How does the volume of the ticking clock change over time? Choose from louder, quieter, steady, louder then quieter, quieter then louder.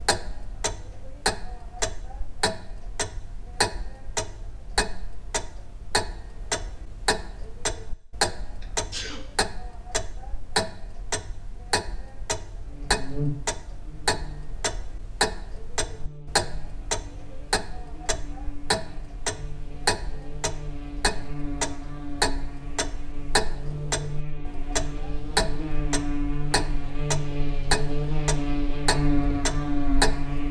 steady.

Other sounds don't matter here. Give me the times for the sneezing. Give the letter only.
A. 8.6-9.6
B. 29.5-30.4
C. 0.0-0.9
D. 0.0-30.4
A.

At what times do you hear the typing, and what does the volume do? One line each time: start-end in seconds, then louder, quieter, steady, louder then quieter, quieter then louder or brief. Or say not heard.
not heard.